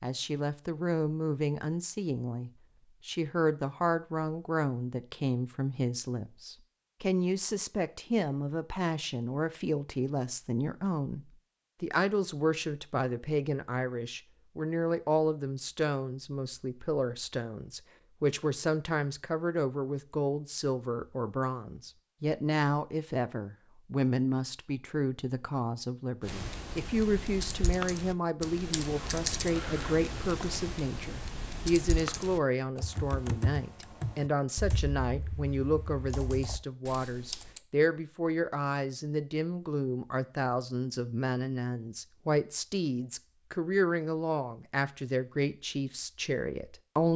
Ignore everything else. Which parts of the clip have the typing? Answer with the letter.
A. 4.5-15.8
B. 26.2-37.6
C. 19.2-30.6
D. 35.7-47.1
B.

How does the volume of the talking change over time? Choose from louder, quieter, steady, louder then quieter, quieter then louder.
steady.